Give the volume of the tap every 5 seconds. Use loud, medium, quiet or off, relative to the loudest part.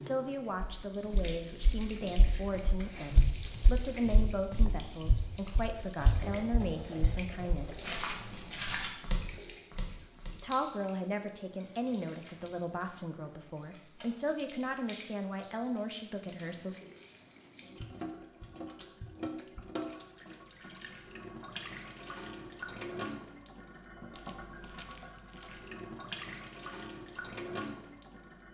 loud, loud, medium, loud, loud, loud.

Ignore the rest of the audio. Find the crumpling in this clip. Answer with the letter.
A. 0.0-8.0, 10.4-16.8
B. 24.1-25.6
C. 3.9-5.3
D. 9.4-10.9
B.